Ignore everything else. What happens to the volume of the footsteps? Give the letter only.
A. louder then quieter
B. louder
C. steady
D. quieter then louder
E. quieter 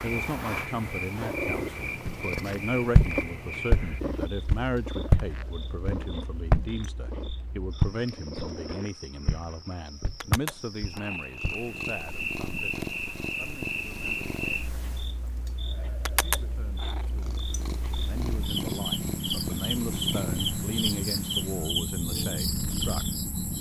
E.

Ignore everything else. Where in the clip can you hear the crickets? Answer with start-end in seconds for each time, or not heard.
0.0-23.5.